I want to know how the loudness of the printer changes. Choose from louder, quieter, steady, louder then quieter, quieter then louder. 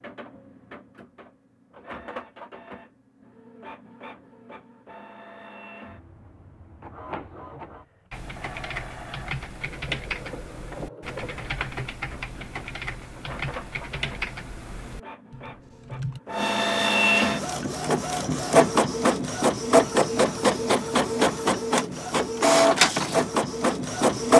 louder.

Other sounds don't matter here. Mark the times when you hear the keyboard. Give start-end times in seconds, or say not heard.
8.1-16.2.